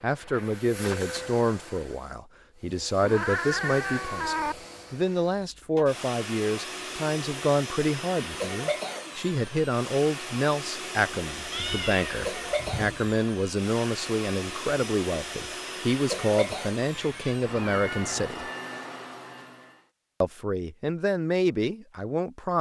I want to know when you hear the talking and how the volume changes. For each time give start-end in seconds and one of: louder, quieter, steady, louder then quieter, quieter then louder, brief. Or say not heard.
0.0-18.4 steady
20.2-22.5 brief.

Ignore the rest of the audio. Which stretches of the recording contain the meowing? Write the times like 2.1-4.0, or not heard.
3.0-4.5, 11.5-13.0, 16.9-18.3.